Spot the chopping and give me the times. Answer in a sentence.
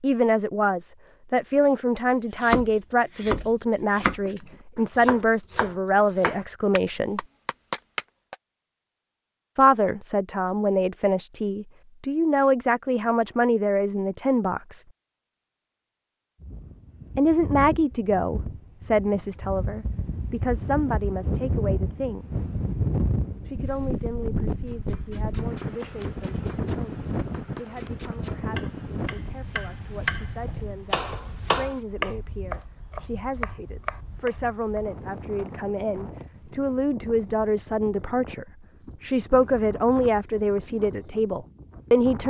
The chopping can be heard from 2.1 to 8.3 s and from 24.6 to 34.8 s.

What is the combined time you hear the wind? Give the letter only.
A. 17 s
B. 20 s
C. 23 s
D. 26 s
D.